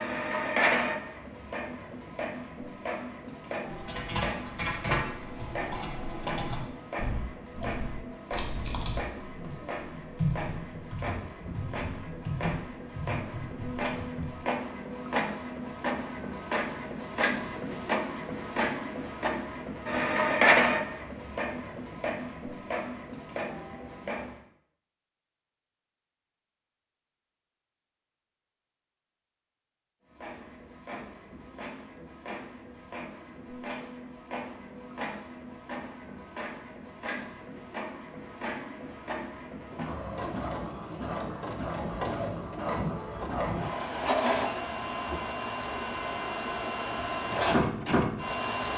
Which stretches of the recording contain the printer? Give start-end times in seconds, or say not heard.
0.0-24.4, 30.1-48.7.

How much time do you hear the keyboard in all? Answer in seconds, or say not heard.
11 s.